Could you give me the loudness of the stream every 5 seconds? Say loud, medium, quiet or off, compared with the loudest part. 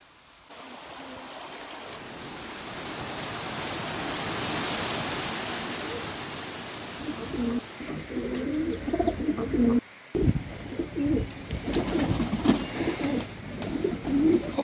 loud, loud, quiet.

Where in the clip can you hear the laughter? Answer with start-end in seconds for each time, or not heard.
not heard.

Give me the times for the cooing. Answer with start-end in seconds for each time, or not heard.
7.0-14.5.